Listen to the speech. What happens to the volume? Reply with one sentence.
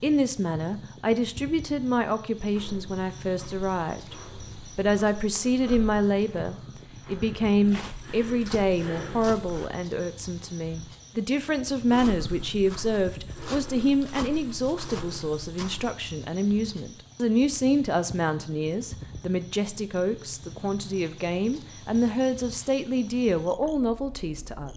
The loudness of the speech stays about the same.